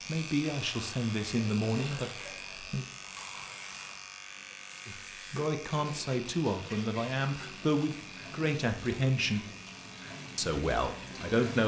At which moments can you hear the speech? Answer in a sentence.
The speech can be heard from 0.0 to 2.9 s, from 4.8 to 9.4 s and from 10.3 to 11.6 s.